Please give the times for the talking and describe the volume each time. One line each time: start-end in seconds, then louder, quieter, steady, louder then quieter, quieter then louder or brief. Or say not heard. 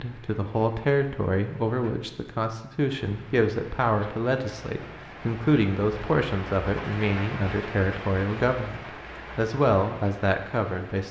0.0-11.0 steady.